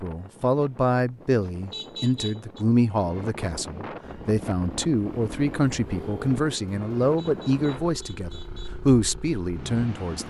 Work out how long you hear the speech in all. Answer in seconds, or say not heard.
10 s.